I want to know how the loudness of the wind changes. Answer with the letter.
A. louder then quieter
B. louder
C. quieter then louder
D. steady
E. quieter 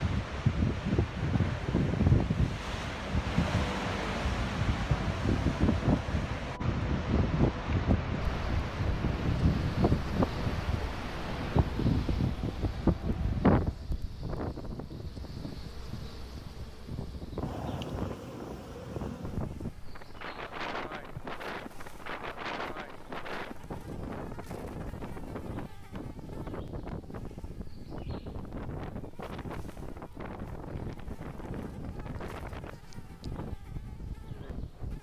E.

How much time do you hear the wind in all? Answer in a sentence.
The wind can be heard for 35 seconds in total.